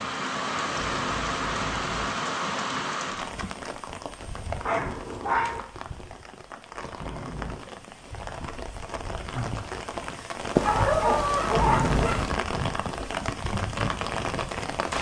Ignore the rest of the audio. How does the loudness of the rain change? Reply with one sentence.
The volume of the rain goes down, then up.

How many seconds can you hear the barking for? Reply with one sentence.
The barking can be heard for 3 seconds in total.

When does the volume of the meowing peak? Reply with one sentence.
The loudest moment of the meowing is at 12 seconds.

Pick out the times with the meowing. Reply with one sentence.
You can hear the meowing from 0.8 to 2.1 s, from 7.0 to 7.7 s and from 11.6 to 12.2 s.